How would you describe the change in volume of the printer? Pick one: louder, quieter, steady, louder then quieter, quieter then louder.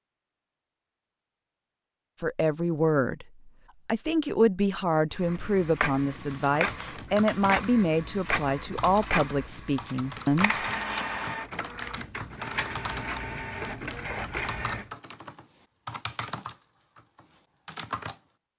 steady.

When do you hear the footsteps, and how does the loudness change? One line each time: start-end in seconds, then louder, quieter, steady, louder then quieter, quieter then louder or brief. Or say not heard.
not heard.